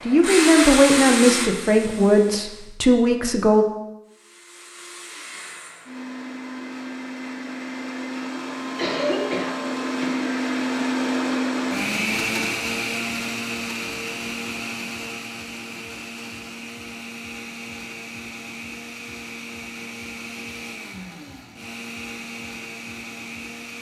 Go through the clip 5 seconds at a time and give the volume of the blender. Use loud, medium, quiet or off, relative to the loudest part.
loud, medium, loud, medium, medium.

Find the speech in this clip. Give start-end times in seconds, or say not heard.
0.1-3.6.